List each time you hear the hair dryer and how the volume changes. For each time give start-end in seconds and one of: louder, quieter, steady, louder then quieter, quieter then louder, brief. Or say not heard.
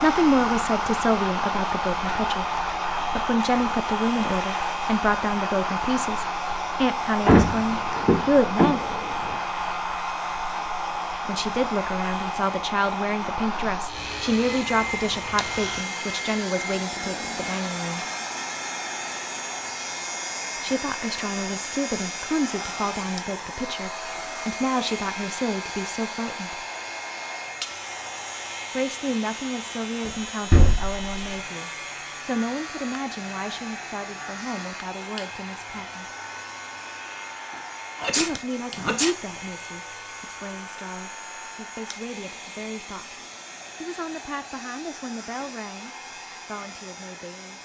0.0-47.5 quieter.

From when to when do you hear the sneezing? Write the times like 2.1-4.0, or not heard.
38.0-39.1.